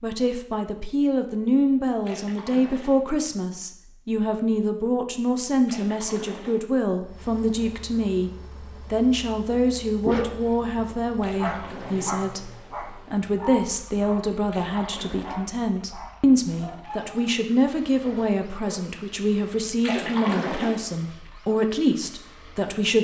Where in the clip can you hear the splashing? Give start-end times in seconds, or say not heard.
2.0-3.0, 5.7-6.7, 11.2-12.2, 14.5-15.4, 19.8-20.8.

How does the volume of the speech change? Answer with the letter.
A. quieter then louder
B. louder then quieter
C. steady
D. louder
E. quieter
C.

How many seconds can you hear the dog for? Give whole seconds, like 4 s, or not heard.
9 s.